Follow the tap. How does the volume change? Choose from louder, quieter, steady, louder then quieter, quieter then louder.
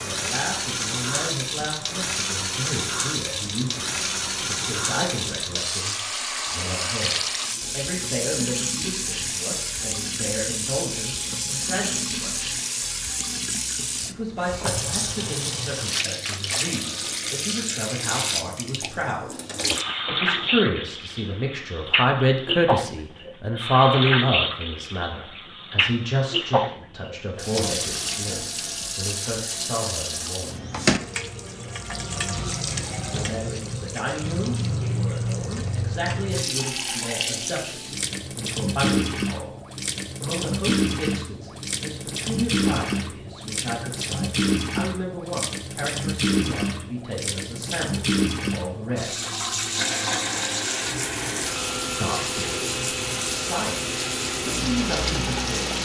steady.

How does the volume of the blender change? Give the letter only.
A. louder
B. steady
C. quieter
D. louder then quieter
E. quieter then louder
B.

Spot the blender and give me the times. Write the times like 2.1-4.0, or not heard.
49.7-55.8.